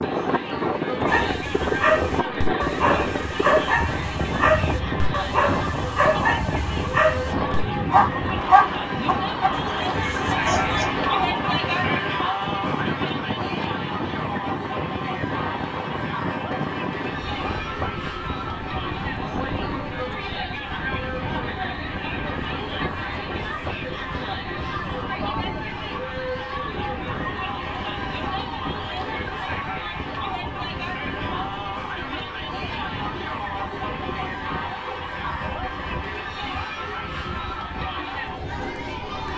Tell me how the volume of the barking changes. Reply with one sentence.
The volume of the barking goes up, then down.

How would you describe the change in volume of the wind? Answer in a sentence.
The volume of the wind goes down.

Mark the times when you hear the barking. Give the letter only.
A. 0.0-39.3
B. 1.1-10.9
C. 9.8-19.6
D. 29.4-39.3
B.